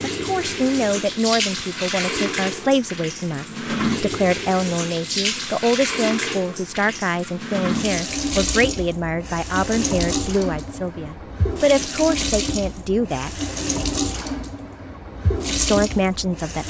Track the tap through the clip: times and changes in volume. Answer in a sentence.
You can hear the tap from 0.0 to 16.6 s, at a steady volume.